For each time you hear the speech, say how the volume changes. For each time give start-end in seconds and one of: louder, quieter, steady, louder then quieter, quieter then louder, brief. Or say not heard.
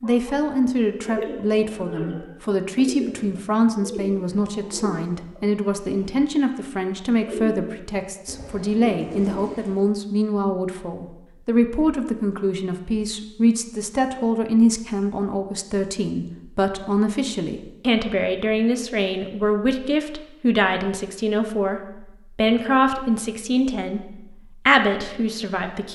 0.0-25.9 steady.